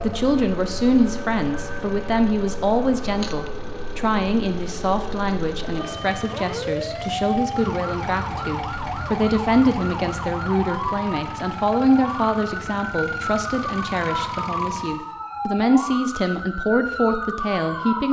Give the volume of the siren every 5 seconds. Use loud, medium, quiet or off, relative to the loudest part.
medium, loud, loud, loud.